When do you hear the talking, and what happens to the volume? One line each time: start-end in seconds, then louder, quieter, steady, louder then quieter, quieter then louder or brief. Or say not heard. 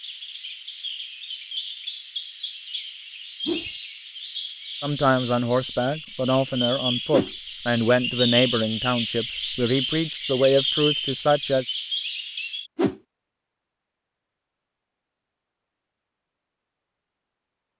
4.8-11.7 steady.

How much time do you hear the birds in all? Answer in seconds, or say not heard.
13 s.